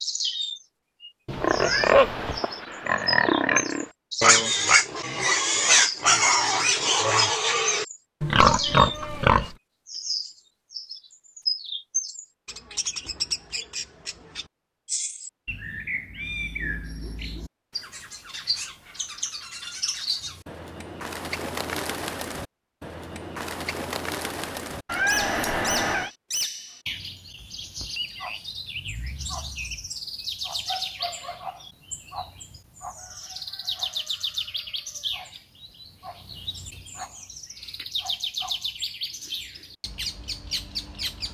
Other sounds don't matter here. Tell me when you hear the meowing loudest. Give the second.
25 s.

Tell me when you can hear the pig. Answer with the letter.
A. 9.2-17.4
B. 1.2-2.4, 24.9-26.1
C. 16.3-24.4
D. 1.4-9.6
D.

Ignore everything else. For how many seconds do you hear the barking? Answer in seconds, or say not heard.
not heard.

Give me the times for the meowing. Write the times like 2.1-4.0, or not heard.
1.2-2.4, 24.9-26.1.